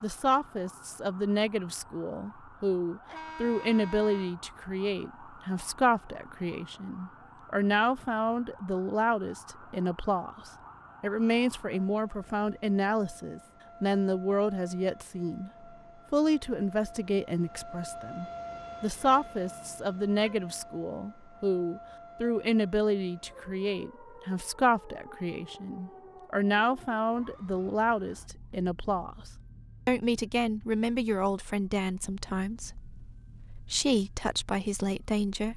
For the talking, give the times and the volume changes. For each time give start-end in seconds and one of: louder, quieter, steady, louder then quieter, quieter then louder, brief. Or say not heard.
0.0-15.5 steady
16.1-35.5 steady.